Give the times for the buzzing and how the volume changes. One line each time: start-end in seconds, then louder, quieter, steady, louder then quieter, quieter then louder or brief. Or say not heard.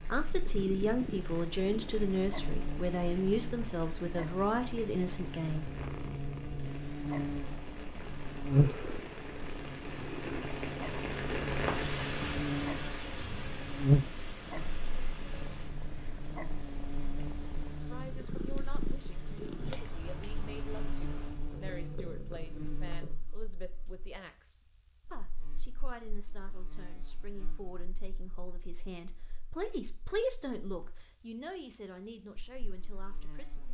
0.0-33.7 louder then quieter.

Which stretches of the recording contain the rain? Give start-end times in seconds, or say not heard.
0.0-21.4.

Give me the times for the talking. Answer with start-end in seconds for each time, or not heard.
0.0-5.7, 17.9-33.7.